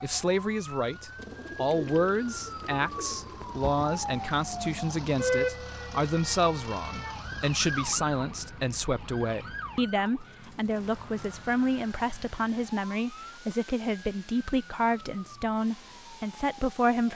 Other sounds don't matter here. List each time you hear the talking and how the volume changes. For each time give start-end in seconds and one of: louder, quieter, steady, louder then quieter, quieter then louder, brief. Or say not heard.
0.0-17.1 steady.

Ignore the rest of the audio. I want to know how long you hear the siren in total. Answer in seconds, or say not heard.
17 s.